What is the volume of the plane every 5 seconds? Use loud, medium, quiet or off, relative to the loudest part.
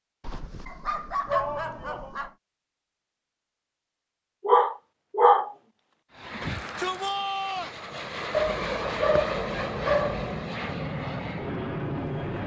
off, loud, loud.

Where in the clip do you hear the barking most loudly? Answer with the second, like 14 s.
5 s.